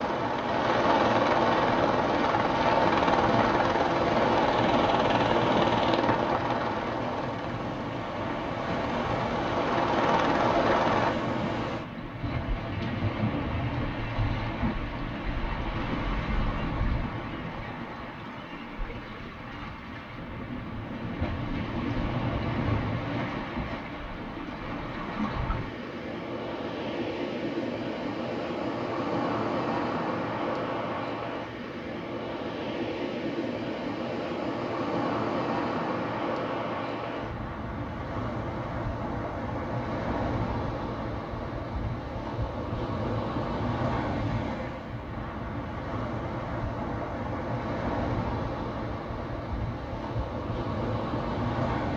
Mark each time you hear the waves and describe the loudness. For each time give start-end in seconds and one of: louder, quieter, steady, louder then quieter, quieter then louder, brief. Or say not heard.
0.0-51.9 steady.